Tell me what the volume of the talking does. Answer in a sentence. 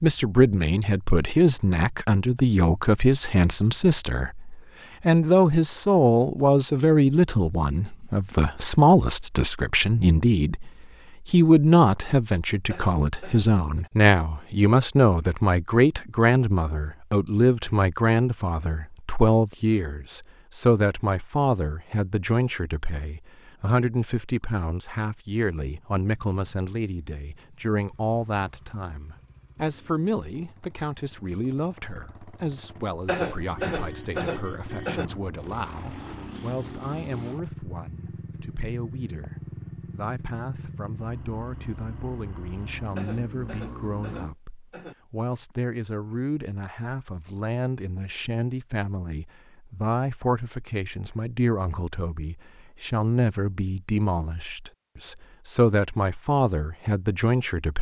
The loudness of the talking goes down, then up.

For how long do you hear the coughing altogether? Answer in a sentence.
You can hear the coughing for 5 seconds altogether.